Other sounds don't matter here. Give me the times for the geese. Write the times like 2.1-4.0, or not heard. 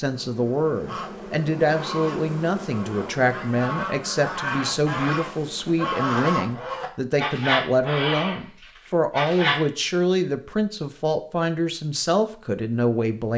0.8-9.6.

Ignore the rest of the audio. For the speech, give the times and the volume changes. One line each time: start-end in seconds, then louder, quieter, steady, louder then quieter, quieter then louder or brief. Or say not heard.
0.0-13.3 steady.